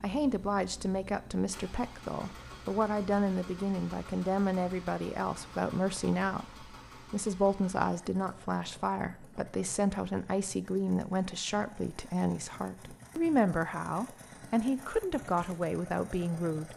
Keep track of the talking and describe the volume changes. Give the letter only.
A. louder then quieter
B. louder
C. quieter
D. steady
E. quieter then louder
D.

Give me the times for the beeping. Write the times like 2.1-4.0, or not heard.
not heard.